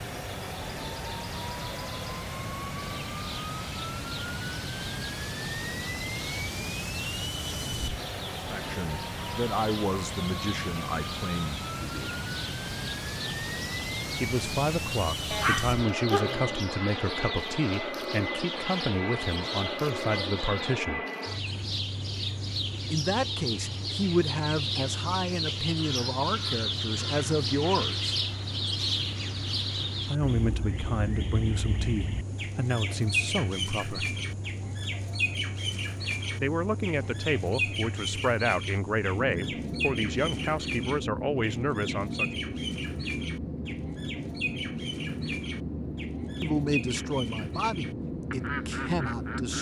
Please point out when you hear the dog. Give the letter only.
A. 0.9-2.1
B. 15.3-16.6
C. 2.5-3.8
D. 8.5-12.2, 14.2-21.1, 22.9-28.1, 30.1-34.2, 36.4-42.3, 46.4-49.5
B.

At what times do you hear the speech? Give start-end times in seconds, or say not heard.
8.5-12.2, 14.2-21.1, 22.9-28.1, 30.1-34.2, 36.4-42.3, 46.4-49.5.